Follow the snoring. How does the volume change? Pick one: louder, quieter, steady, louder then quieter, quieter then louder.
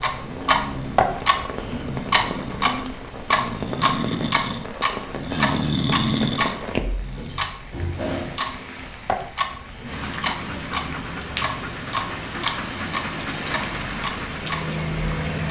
louder.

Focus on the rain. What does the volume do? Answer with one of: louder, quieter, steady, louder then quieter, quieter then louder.
louder.